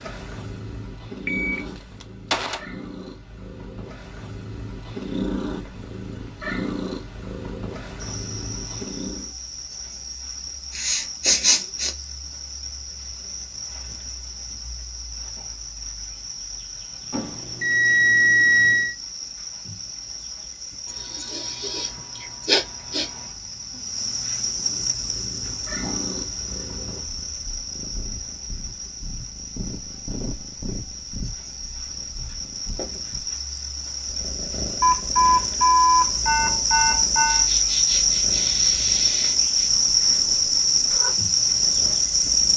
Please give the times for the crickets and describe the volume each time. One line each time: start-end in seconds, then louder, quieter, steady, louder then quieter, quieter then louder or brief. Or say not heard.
8.0-42.5 louder.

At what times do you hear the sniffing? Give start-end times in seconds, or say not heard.
10.7-11.9, 20.9-23.1, 37.2-39.7.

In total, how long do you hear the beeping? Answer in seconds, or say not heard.
6 s.